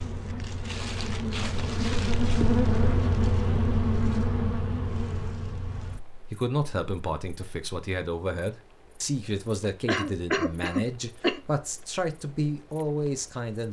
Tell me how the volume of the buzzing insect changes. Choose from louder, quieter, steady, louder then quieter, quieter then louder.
quieter.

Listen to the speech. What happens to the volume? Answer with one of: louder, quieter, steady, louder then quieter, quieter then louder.
steady.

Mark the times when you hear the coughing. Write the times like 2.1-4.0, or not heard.
9.8-11.4.